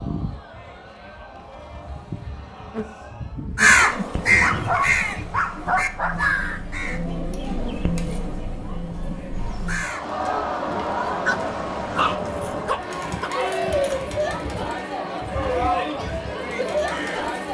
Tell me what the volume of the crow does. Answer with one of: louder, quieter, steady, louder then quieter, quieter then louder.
quieter.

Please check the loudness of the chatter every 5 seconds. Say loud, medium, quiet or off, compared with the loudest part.
quiet, medium, loud, loud.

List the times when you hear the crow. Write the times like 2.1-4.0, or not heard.
3.5-10.1, 12.2-17.4.